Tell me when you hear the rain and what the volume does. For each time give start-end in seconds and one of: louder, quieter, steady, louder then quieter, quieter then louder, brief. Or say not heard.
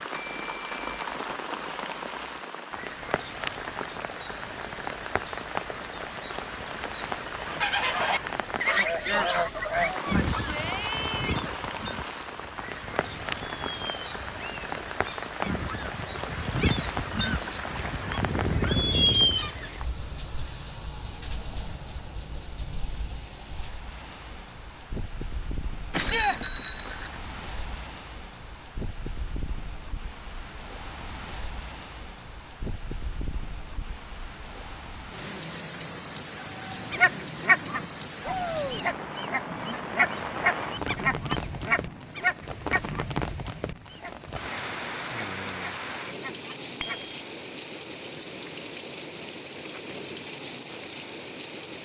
0.0-51.7 quieter then louder.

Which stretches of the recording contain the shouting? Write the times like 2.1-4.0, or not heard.
10.0-11.4, 25.9-26.4, 38.2-38.9.